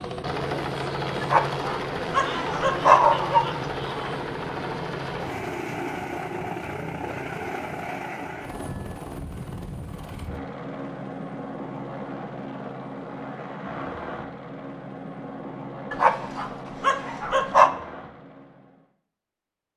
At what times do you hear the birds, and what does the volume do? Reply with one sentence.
The birds can't be heard in this clip.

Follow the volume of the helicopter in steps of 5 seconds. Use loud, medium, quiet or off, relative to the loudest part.
loud, loud, medium, medium.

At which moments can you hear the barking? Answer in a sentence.
The barking can be heard from 1.2 to 3.5 s and from 15.9 to 17.8 s.